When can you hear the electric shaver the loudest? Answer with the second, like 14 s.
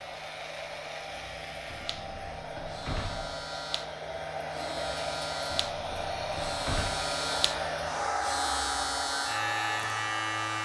10 s.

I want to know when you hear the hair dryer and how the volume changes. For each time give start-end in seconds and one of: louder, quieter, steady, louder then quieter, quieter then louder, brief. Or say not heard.
0.0-10.6 louder.